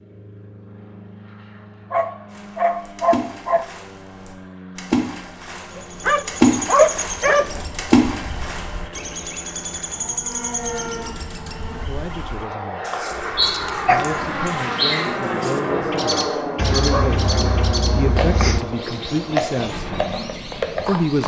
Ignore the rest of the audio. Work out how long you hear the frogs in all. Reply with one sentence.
You can't hear the frogs here.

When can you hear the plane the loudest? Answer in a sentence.
The volume of the plane peaks at 16 seconds.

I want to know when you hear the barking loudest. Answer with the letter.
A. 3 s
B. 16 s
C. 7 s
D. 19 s
C.